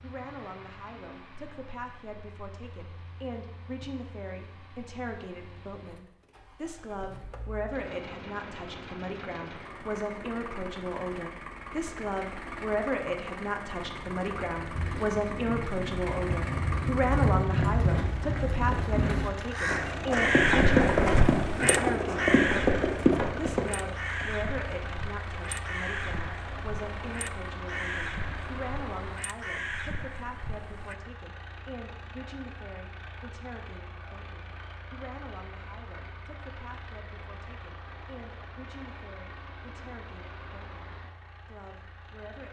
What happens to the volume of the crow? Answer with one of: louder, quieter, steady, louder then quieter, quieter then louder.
quieter.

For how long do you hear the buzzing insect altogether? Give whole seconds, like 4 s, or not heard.
not heard.